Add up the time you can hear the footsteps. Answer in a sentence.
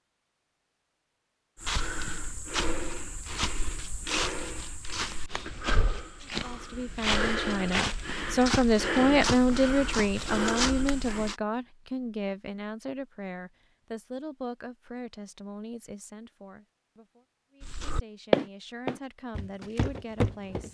The footsteps can be heard for 13 seconds in total.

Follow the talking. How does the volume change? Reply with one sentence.
The volume of the talking goes down.